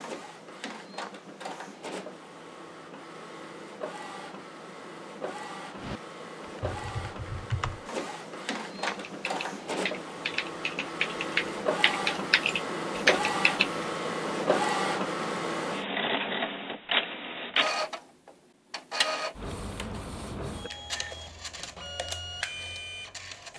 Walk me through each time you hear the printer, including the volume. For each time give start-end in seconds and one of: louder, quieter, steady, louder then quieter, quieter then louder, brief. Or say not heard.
0.0-23.5 louder then quieter.